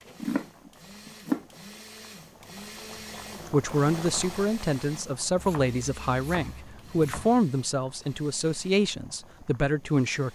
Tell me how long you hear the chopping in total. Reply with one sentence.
You can hear the chopping for 3 seconds altogether.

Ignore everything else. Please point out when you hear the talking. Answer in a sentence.
The talking can be heard from 3.5 to 10.3 s.